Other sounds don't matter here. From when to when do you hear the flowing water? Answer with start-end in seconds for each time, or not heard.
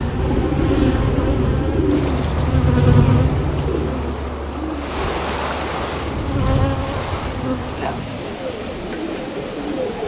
1.9-10.0.